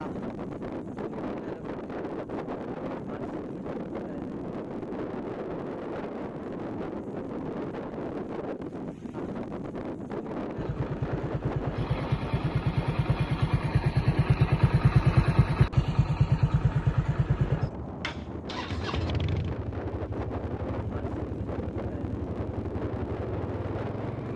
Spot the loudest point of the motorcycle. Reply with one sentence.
The volume of the motorcycle peaks at 15 seconds.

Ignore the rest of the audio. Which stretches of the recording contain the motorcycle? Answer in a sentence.
The motorcycle can be heard from 10.6 to 24.3 s.